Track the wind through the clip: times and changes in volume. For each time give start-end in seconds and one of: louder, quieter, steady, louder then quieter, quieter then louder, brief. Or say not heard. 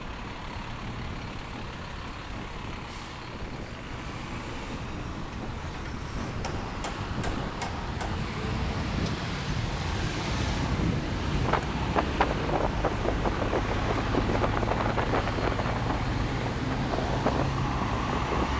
0.0-18.5 louder.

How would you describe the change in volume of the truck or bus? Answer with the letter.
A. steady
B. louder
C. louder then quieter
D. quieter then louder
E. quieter
B.